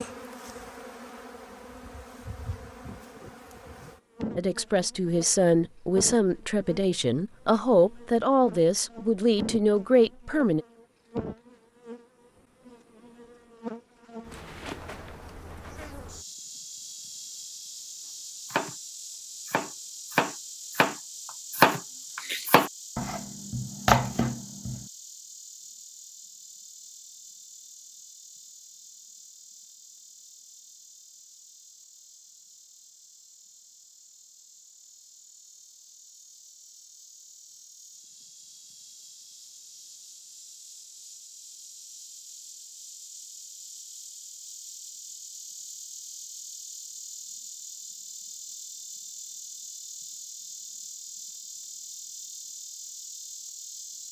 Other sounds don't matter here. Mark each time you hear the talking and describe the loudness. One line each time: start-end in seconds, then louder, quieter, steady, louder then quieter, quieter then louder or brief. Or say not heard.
4.3-10.7 steady.